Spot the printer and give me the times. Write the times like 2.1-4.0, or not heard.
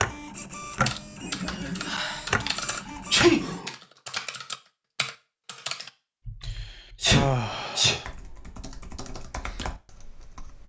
0.0-3.6.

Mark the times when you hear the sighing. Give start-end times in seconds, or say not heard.
1.4-3.8, 6.4-8.1.